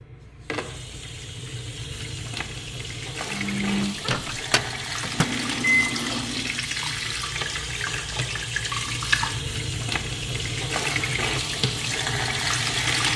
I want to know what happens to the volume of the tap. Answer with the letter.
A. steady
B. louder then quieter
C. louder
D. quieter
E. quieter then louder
C.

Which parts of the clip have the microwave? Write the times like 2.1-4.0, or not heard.
3.3-6.7.